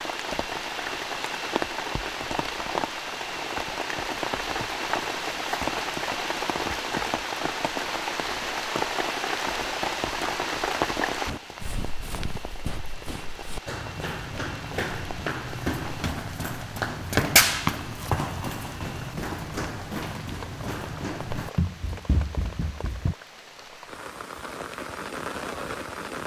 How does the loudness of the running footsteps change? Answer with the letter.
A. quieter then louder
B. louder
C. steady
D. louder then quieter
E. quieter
D.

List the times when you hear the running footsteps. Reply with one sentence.
The running footsteps can be heard from 11.2 to 23.1 s.